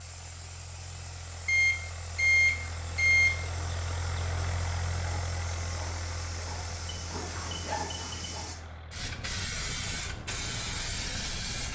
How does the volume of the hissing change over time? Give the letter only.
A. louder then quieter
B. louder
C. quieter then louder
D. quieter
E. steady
B.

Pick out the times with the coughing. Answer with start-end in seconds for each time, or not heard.
not heard.